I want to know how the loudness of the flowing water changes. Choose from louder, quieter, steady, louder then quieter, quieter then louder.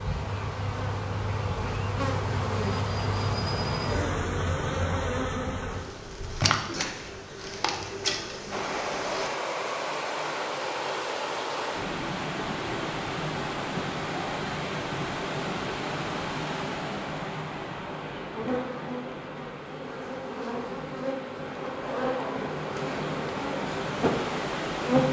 quieter then louder.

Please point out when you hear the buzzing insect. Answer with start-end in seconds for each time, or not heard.
0.0-9.3, 17.9-25.0.